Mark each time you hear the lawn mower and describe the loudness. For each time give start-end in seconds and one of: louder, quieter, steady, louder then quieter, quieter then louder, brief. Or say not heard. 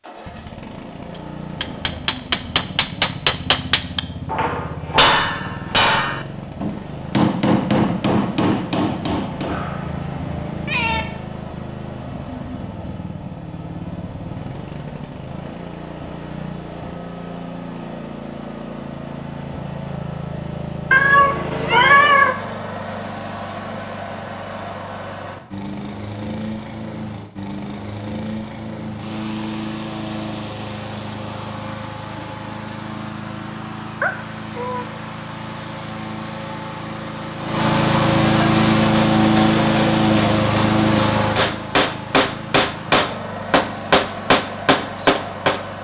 0.0-45.7 louder.